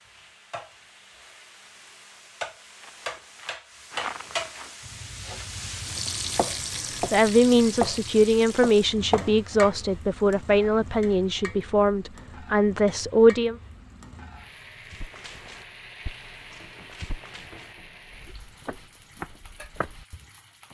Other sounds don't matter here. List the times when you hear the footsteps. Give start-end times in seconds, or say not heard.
2.7-4.8, 14.9-20.6.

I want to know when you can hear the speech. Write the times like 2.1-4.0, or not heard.
7.1-13.6.